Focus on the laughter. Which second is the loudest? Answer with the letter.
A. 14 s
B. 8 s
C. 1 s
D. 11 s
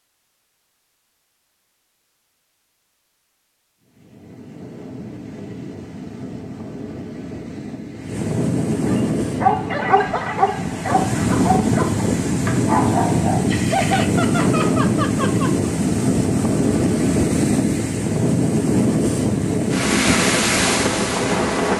A.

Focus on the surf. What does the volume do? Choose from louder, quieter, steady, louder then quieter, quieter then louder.
louder.